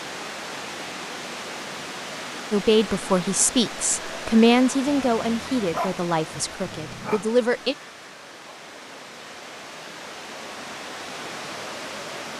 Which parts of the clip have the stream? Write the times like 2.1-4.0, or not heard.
0.0-12.3.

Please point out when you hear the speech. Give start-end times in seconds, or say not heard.
2.5-7.8.